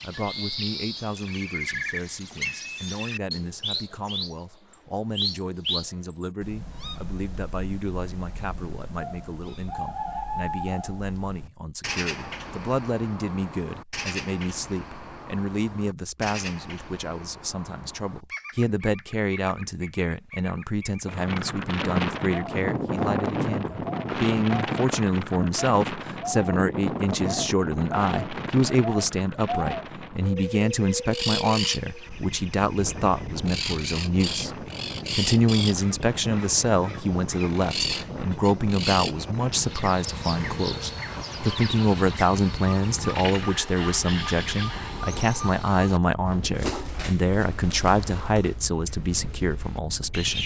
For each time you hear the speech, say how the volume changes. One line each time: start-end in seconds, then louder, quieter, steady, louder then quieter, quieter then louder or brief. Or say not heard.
0.0-50.4 louder.